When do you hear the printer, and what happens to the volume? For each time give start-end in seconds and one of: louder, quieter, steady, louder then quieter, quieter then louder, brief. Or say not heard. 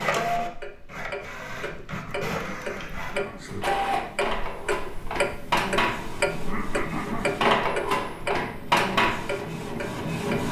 0.0-10.4 louder.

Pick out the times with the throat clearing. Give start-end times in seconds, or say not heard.
1.9-3.5, 6.4-7.3.